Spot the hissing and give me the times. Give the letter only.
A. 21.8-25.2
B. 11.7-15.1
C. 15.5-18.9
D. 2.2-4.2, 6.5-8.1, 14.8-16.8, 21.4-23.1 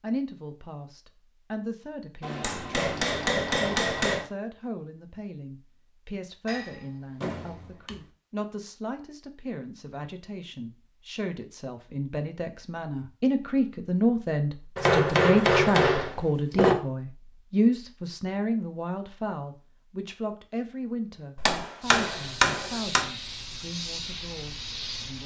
A.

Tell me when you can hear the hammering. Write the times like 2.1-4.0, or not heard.
2.2-4.2, 6.5-8.1, 14.8-16.8, 21.4-23.1.